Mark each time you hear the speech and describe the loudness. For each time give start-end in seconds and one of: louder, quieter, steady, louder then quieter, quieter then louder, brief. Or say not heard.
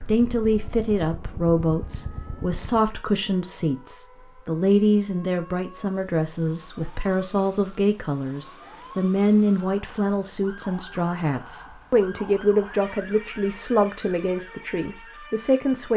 0.0-15.9 steady.